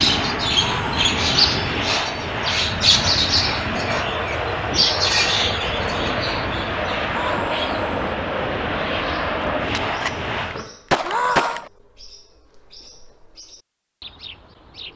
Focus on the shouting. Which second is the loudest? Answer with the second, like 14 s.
11 s.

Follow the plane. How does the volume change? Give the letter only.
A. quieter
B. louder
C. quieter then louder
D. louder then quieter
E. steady
E.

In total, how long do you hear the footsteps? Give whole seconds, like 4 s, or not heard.
not heard.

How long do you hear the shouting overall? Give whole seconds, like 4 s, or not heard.
2 s.